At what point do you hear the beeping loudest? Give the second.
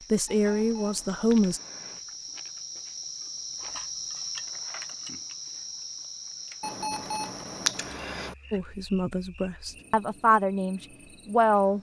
8 s.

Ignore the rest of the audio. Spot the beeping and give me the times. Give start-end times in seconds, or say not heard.
0.2-2.0, 6.6-8.3.